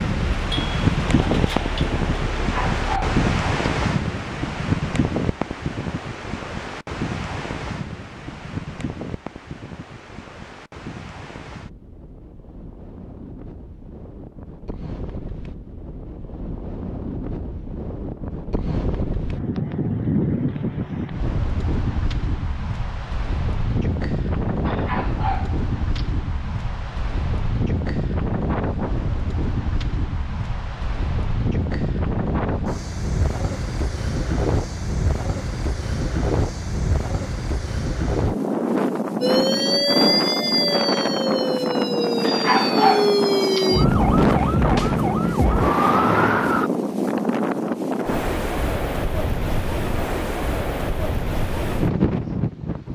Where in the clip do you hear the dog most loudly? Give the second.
43 s.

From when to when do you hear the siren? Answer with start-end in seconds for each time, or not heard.
39.2-46.7.